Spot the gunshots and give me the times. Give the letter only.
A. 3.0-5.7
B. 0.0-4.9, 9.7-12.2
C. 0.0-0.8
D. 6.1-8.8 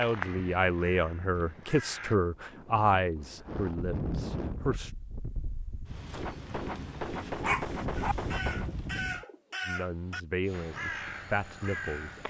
D.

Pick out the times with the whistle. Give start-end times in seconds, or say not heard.
not heard.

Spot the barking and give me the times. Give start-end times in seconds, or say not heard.
7.4-8.2.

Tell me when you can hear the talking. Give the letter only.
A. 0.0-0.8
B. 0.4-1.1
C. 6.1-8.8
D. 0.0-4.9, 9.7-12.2
D.